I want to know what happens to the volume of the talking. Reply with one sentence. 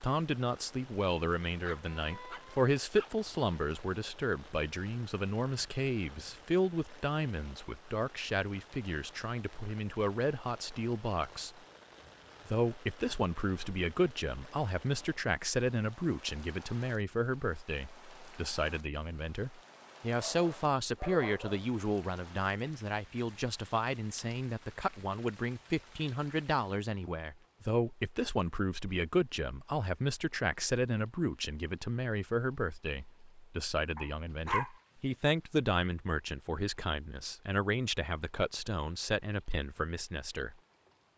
The volume of the talking stays about the same.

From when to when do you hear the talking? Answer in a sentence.
The talking can be heard from 0.0 to 11.5 s and from 12.4 to 40.5 s.